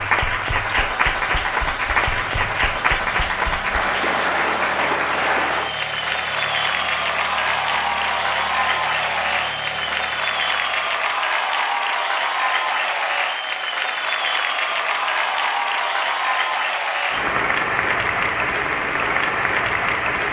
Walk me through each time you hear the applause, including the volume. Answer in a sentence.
You can hear the applause from 0.0 to 20.2 s, at a steady volume.